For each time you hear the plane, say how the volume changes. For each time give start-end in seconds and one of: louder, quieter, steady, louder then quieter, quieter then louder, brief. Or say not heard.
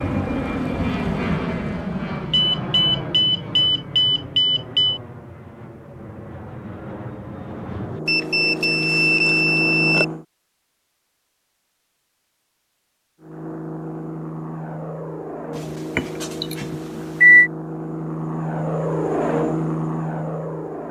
0.0-10.2 quieter then louder
13.2-20.8 louder.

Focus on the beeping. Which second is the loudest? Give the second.
17 s.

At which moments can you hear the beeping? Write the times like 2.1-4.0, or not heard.
2.3-5.0, 8.1-10.1, 15.6-17.5.